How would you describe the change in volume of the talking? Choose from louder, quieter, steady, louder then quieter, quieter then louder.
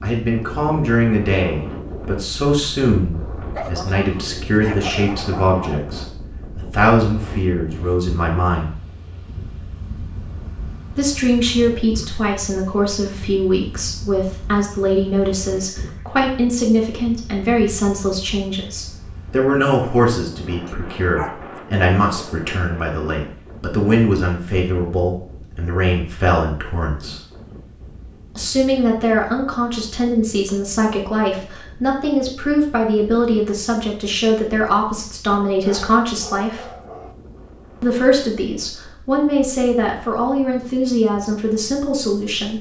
steady.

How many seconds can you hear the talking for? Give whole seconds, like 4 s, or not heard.
38 s.